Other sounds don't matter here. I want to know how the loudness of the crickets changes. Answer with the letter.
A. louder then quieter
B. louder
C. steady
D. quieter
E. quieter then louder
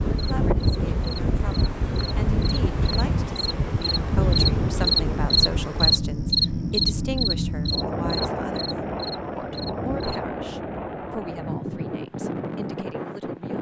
A.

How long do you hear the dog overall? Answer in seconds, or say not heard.
not heard.